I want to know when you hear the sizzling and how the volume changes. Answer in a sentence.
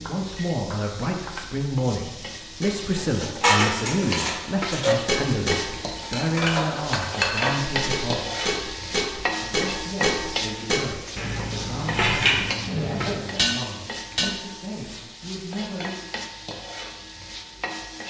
The sizzling can be heard from 0.0 to 18.0 s, getting louder then quieter.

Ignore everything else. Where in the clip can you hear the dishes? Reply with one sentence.
You can hear the dishes from 2.6 to 14.3 s.